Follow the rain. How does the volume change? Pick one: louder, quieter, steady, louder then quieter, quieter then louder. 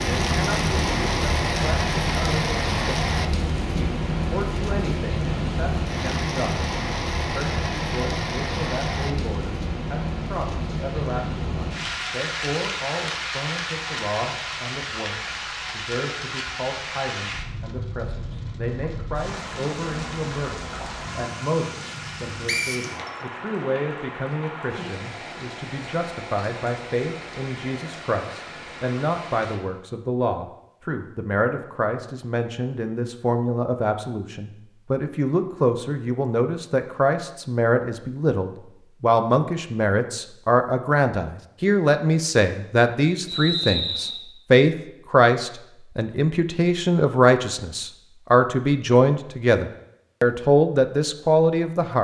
quieter.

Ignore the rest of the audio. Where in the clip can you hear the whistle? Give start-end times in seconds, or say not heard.
22.4-23.1, 43.2-44.2.